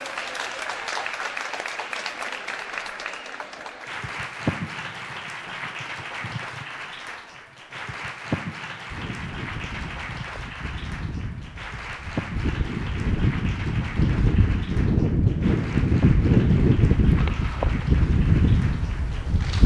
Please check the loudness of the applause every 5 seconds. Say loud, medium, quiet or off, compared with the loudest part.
loud, loud, medium, medium.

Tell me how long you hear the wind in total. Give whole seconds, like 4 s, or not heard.
11 s.